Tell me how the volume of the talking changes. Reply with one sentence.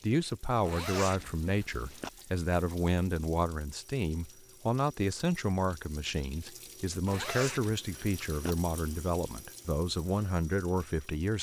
The loudness of the talking stays about the same.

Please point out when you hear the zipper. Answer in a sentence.
You can hear the zipper from 0.7 to 2.1 s and from 7.0 to 8.6 s.